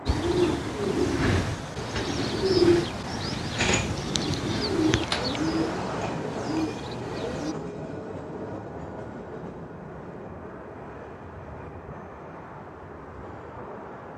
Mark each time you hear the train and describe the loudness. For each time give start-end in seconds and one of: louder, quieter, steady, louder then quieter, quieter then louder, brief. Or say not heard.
0.0-14.1 louder then quieter.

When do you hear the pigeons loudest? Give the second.
3 s.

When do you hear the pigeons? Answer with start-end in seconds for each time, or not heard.
0.1-7.5.